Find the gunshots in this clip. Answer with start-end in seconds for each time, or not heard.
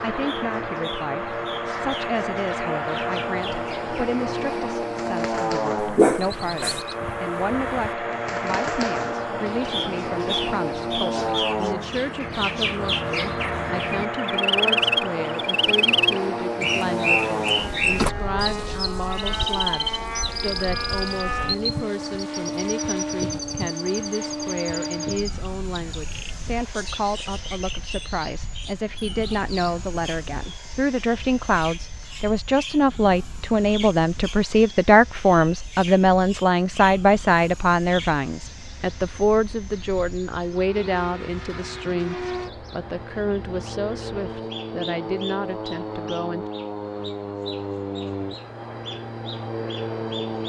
not heard.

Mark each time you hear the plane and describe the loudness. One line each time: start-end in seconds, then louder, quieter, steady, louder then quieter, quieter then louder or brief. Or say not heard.
0.0-50.4 quieter then louder.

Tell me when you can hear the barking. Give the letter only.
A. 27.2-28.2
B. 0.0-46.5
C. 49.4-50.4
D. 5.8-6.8
D.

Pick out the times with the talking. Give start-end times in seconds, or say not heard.
0.0-46.5.